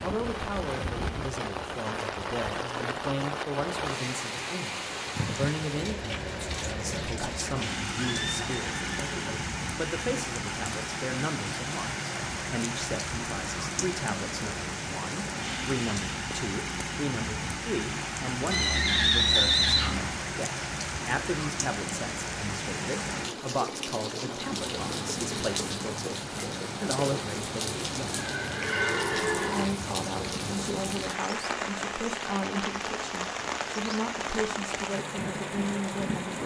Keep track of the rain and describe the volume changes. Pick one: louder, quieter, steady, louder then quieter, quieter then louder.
steady.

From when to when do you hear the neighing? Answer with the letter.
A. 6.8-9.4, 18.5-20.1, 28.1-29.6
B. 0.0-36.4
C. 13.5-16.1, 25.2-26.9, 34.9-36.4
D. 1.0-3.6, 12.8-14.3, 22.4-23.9
A.